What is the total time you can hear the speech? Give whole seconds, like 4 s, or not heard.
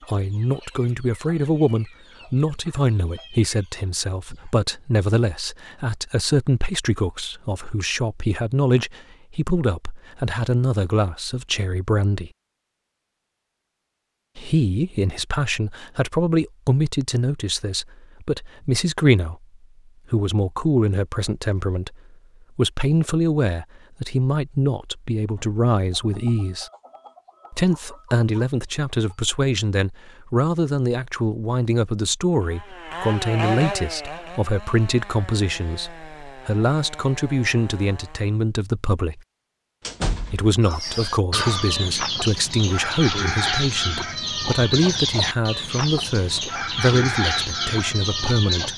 44 s.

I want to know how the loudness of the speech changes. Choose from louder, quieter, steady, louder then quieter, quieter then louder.
steady.